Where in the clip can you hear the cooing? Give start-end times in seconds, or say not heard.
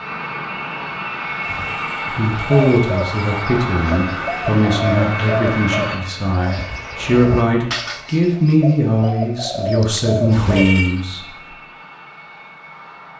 2.5-11.0.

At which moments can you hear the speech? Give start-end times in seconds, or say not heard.
2.1-11.2.